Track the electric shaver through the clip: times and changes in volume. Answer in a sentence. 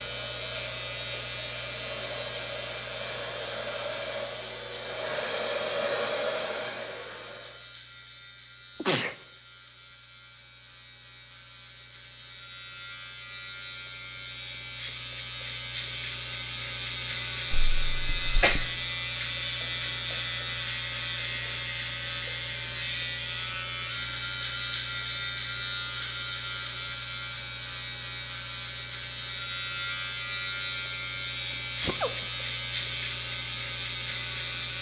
You can hear the electric shaver from 0.0 to 34.7 s, getting quieter then louder.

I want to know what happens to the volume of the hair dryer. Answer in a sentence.
The loudness of the hair dryer goes up.